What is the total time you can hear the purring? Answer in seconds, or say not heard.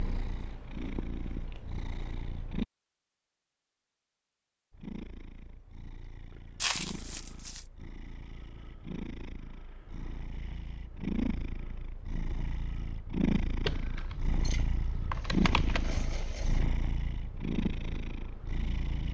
17 s.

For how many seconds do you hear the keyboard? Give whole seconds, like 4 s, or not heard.
3 s.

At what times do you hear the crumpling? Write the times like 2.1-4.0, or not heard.
6.6-7.7.